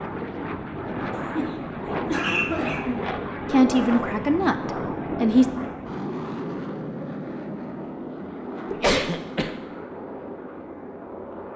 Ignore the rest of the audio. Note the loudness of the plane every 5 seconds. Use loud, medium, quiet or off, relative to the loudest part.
loud, loud, medium.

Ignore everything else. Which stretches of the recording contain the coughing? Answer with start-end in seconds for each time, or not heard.
1.1-3.1, 8.7-9.5.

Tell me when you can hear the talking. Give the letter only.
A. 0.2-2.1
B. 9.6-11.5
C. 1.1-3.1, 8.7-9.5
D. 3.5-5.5
D.